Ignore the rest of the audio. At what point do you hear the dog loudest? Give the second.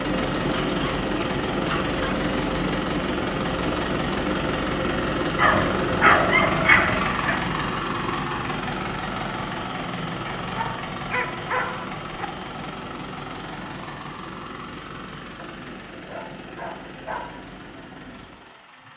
6 s.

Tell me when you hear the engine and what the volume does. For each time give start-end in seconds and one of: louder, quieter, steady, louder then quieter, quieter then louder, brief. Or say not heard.
0.0-18.9 quieter.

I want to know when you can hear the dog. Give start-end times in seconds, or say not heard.
0.3-2.0, 5.3-7.4, 10.2-12.2, 15.3-17.4.